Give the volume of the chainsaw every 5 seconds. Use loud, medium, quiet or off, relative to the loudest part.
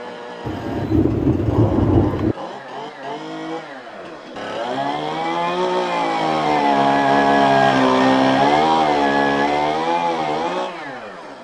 quiet, loud, medium.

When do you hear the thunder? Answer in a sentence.
The thunder can be heard from 0.5 to 2.4 s.